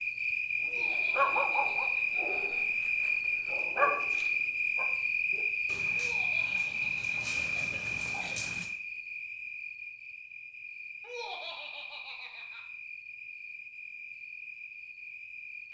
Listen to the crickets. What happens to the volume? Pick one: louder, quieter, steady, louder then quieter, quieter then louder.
quieter.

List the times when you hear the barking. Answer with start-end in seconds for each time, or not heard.
0.8-8.7.